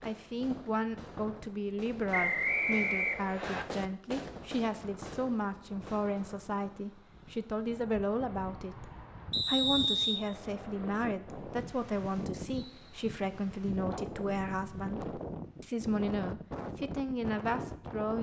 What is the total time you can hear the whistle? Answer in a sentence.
The whistle can be heard for 3 seconds in total.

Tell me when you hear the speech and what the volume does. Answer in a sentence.
The speech can be heard from 0.0 to 18.1 s, at a steady volume.